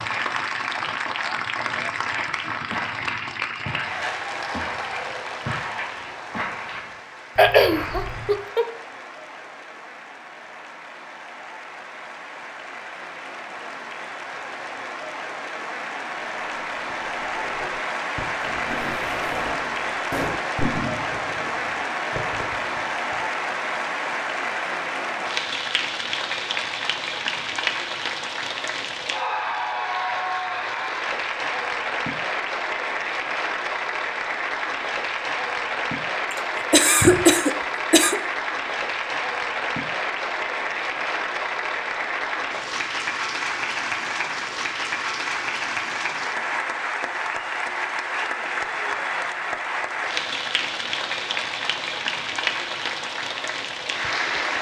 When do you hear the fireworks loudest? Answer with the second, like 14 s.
21 s.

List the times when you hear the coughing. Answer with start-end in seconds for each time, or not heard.
7.3-8.7, 36.7-38.1.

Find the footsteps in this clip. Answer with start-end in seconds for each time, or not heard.
1.9-8.4.